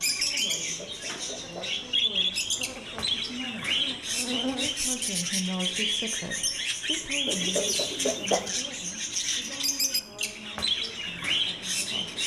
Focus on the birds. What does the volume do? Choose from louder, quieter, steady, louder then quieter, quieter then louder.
steady.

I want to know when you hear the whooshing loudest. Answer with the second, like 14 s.
8 s.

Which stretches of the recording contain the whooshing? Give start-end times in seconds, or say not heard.
0.5-1.8, 7.2-8.5.